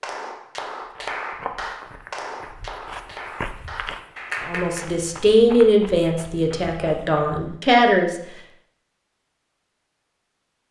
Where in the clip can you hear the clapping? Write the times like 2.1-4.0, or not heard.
0.0-5.0.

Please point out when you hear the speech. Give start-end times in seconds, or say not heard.
4.5-8.2.